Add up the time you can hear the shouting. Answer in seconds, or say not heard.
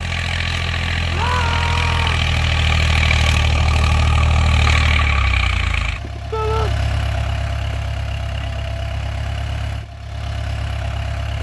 2 s.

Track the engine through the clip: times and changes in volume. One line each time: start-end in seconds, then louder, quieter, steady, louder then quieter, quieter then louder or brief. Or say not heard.
0.0-11.3 quieter.